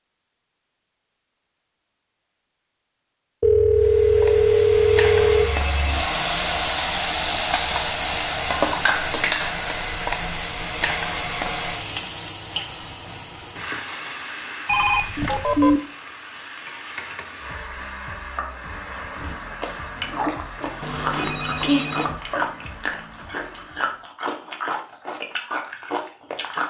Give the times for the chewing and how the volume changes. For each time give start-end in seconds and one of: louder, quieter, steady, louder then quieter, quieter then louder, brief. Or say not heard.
19.1-26.6 steady.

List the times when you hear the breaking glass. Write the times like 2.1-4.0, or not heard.
not heard.